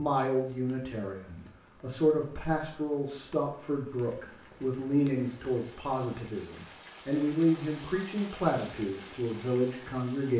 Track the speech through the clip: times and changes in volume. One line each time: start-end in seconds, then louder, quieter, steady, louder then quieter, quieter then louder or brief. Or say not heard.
0.0-10.3 steady.